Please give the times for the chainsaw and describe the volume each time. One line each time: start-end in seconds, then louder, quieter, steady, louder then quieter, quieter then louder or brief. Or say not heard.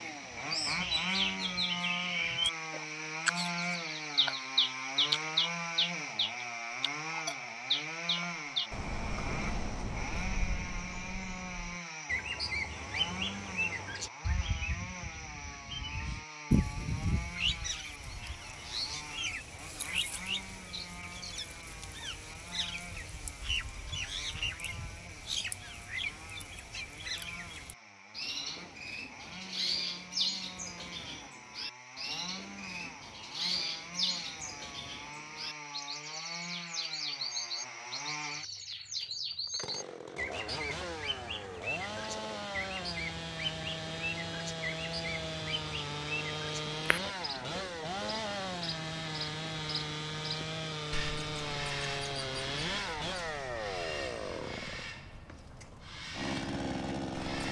0.0-57.4 quieter then louder.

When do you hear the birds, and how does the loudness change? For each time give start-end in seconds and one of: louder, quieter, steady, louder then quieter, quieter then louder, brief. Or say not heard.
0.0-57.4 quieter.